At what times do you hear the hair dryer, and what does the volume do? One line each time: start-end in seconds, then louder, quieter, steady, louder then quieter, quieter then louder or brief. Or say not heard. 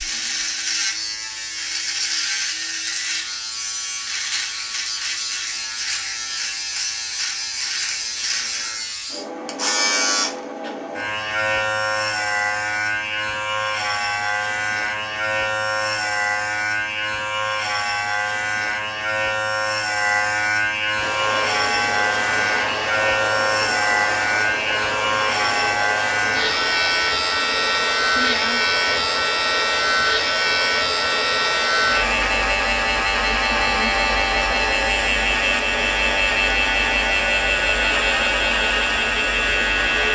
20.9-40.1 steady.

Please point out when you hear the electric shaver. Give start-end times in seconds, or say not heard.
0.0-40.1.